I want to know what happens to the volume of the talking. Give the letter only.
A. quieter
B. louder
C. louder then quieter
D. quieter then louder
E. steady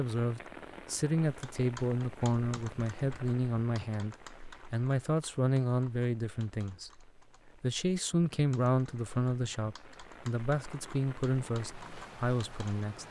E.